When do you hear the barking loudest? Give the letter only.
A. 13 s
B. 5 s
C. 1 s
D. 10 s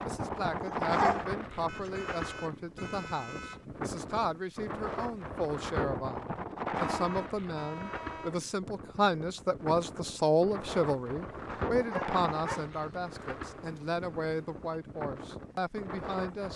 C.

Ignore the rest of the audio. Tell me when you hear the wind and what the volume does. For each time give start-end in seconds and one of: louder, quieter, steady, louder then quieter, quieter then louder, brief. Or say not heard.
0.0-16.5 quieter.